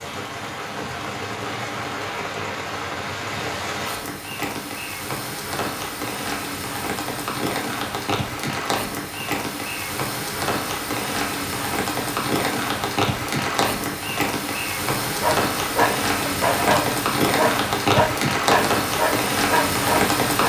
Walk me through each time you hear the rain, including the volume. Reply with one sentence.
You can hear the rain from 0.0 to 20.4 s, getting louder.